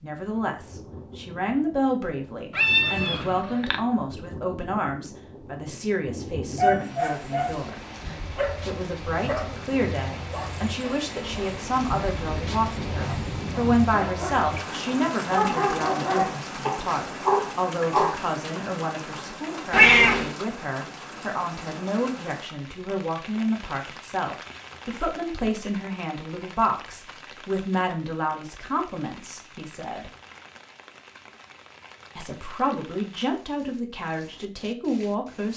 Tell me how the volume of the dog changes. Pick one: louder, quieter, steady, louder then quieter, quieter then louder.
quieter then louder.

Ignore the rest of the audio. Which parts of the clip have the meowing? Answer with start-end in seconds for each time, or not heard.
2.5-3.8, 19.7-20.4.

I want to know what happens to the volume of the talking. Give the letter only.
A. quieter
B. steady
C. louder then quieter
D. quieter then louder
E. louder
B.